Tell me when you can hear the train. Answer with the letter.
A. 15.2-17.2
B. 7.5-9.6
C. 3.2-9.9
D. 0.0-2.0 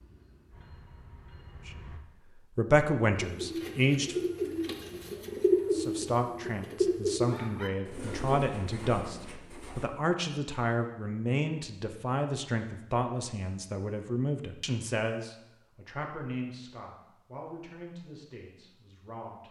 D.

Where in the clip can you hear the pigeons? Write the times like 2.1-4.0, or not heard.
3.2-9.9.